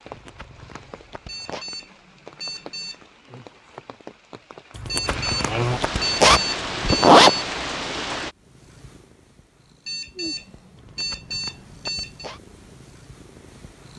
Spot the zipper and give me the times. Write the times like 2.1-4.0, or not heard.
0.1-1.6, 4.8-7.3, 10.8-12.4.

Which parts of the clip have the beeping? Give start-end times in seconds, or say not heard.
1.2-3.0, 4.8-7.2, 9.8-12.3.